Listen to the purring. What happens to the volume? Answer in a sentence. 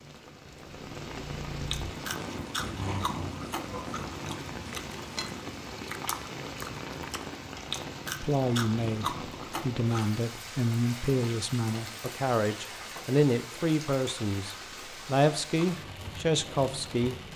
The volume of the purring goes up, then down.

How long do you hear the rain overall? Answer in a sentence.
You can hear the rain for 17 seconds altogether.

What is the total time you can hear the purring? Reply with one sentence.
The purring can be heard for 6 seconds in total.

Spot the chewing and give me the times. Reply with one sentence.
You can hear the chewing from 1.5 to 10.1 s.